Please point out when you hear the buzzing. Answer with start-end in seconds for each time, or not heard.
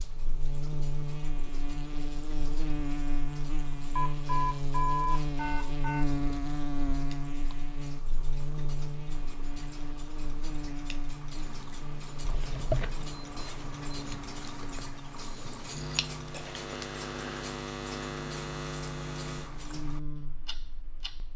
0.0-21.3.